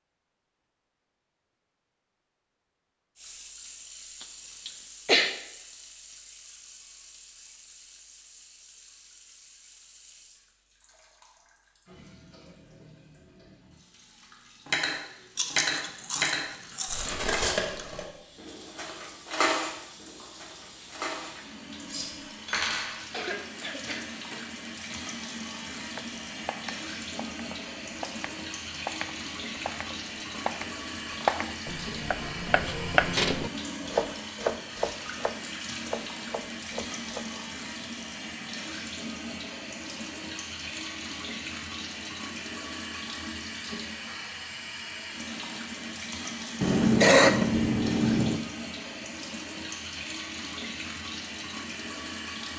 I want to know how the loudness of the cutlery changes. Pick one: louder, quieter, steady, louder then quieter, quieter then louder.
quieter.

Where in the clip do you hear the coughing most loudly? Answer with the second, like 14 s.
47 s.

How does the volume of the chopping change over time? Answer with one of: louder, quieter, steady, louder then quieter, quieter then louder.
louder then quieter.